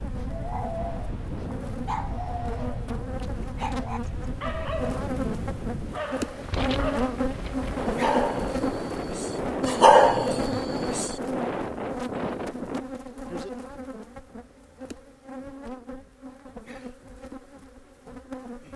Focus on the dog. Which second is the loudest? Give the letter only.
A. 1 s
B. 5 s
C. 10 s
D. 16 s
C.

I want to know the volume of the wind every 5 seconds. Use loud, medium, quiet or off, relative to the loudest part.
medium, loud, loud, off.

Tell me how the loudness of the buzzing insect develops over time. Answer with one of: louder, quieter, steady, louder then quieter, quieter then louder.
louder then quieter.